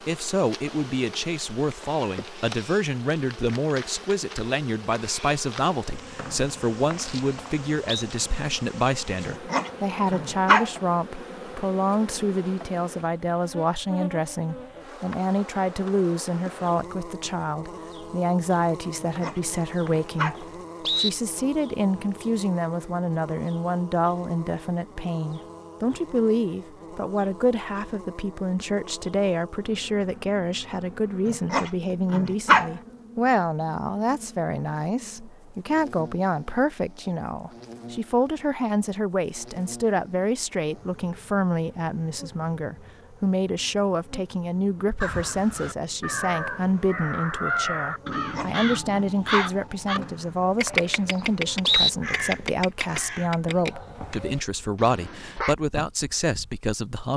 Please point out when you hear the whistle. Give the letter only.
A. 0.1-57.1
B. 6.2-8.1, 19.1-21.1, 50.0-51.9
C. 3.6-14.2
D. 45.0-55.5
B.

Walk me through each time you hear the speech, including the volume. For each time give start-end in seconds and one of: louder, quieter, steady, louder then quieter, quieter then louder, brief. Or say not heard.
0.1-57.1 steady.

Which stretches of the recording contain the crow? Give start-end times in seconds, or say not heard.
45.0-55.5.